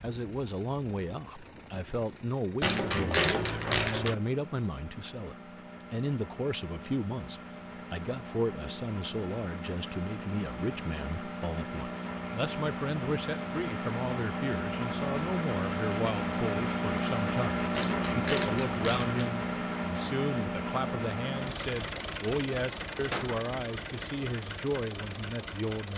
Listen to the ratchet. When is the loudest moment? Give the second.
3 s.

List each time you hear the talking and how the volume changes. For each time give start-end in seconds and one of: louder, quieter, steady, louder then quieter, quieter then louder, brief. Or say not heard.
0.0-25.9 steady.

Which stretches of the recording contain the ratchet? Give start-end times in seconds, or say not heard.
2.6-4.2, 17.8-19.3.